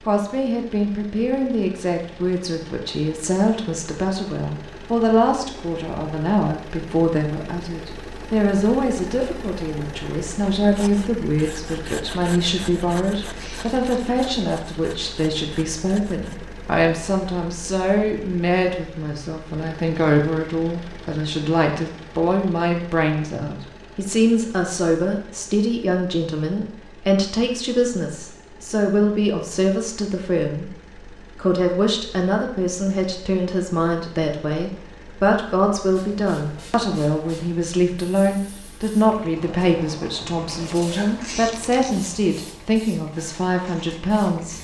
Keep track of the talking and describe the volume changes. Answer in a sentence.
The volume of the talking stays about the same.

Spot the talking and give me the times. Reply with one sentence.
You can hear the talking from 0.1 to 30.7 s and from 31.4 to 44.5 s.